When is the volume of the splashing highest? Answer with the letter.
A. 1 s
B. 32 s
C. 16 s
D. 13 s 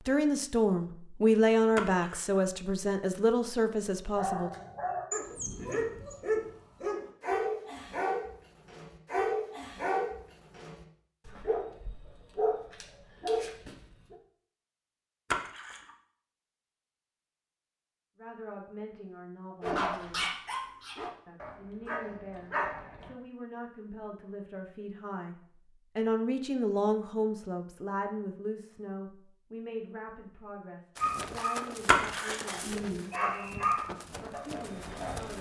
B.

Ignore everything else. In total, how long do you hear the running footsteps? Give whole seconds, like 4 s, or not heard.
4 s.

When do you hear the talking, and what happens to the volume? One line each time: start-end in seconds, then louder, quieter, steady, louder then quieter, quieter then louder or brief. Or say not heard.
0.1-4.5 louder then quieter
18.1-20.2 brief
21.2-35.3 louder then quieter.